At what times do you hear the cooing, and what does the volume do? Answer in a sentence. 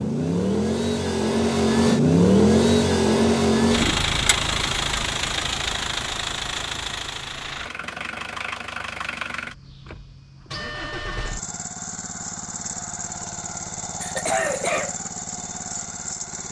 The cooing can't be heard in this clip.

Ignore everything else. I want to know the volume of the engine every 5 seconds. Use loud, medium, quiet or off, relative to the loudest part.
loud, medium, quiet, quiet.